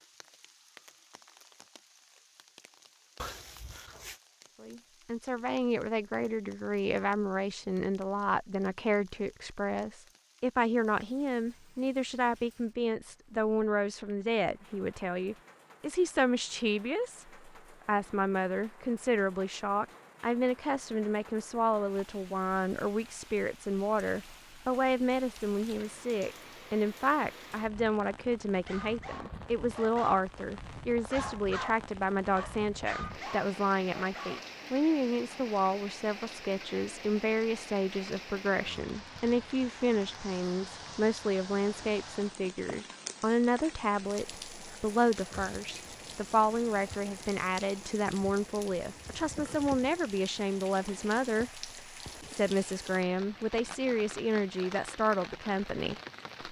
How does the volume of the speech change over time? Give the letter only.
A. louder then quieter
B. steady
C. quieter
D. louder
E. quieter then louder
B.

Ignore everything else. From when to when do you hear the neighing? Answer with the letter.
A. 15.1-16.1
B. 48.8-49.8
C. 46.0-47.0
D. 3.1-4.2
D.